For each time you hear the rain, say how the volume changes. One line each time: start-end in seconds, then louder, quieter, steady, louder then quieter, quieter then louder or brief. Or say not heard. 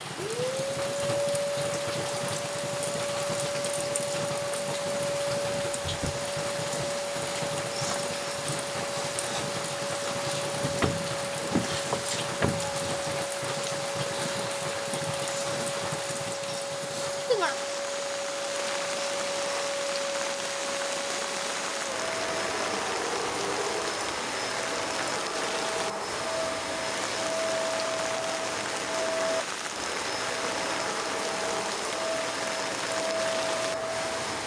0.0-34.4 steady.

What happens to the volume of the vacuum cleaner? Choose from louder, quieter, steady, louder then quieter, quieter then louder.
steady.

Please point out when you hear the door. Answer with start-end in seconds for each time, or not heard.
10.6-13.2.